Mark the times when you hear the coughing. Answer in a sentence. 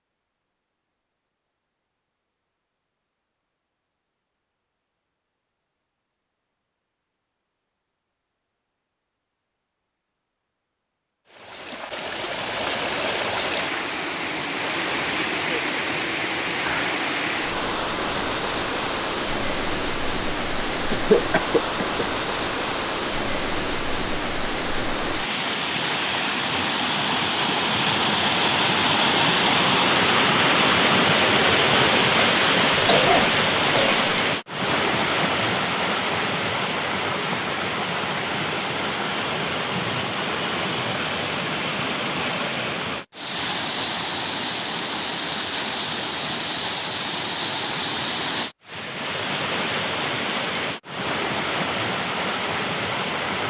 The coughing can be heard from 20.8 to 22.1 s and from 32.8 to 34.0 s.